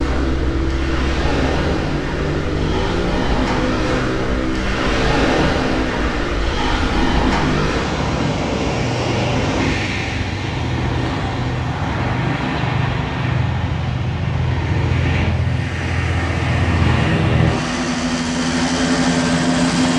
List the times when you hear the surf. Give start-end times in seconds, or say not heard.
0.0-19.9.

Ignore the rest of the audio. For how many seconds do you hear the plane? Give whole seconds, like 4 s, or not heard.
20 s.